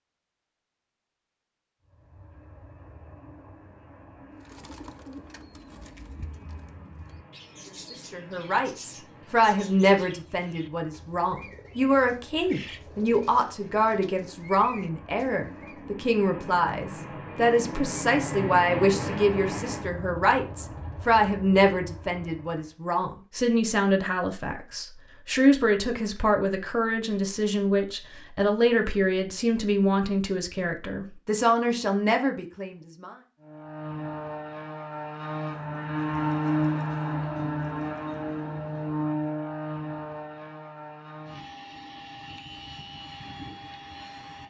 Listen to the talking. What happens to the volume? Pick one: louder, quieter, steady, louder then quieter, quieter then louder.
steady.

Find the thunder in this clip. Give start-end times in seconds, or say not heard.
not heard.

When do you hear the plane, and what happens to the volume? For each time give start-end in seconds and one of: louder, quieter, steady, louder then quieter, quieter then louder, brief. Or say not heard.
1.8-22.7 louder
33.4-44.4 louder then quieter.